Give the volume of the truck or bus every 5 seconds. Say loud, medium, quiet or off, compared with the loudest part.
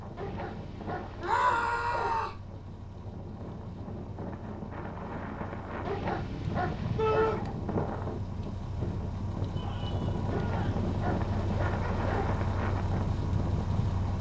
quiet, medium, loud.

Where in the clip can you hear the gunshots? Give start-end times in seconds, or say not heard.
not heard.